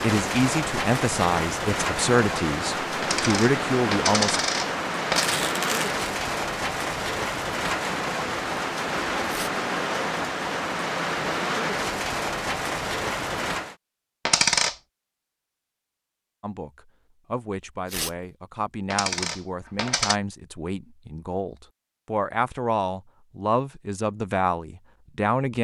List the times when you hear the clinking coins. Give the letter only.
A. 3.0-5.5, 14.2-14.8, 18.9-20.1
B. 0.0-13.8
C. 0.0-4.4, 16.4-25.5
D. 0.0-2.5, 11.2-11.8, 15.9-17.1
A.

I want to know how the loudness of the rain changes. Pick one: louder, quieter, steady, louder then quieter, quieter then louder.
steady.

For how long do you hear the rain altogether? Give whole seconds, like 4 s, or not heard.
14 s.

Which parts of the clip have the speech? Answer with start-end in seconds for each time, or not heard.
0.0-4.4, 16.4-25.5.